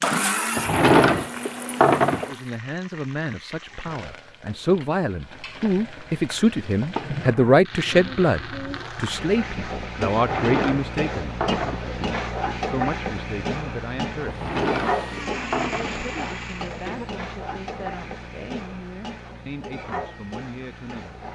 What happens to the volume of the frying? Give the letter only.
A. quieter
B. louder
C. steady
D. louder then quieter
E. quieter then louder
D.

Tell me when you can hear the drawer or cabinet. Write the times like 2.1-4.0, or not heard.
0.6-2.4, 10.2-11.9, 14.2-16.1.